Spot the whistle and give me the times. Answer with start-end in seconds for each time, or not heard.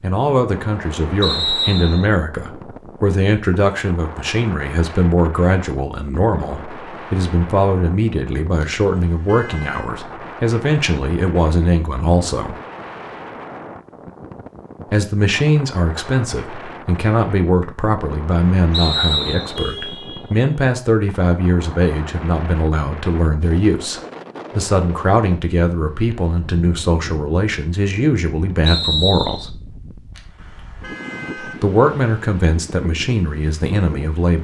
1.2-2.0, 18.7-19.6, 28.6-29.5.